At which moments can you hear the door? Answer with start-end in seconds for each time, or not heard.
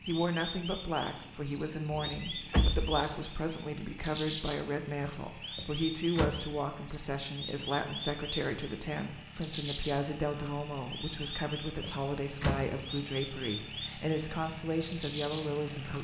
1.9-3.0, 5.5-6.5, 11.8-12.8.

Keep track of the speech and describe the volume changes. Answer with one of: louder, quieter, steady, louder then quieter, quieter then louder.
steady.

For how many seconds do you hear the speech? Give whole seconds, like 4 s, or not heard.
16 s.